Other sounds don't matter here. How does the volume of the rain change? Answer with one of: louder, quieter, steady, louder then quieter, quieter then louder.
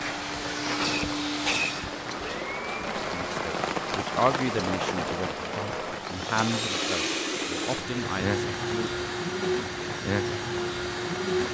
louder then quieter.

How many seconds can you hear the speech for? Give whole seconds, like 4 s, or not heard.
6 s.